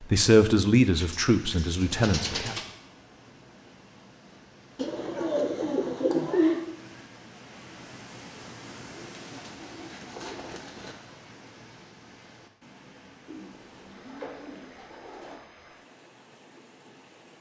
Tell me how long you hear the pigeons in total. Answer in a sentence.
You can hear the pigeons for 8 seconds altogether.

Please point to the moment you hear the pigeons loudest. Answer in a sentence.
The volume of the pigeons peaks at 6 seconds.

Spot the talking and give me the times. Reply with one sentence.
You can hear the talking from 0.0 to 2.5 s.